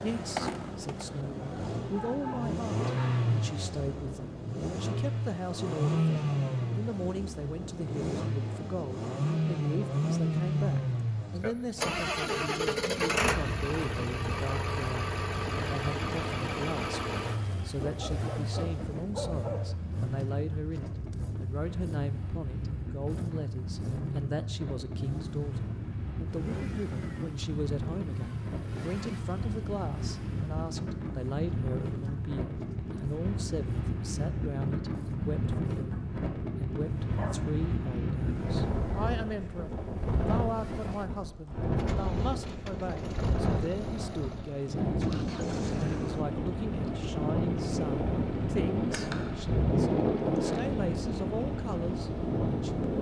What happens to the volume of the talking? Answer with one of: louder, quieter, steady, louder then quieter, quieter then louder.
steady.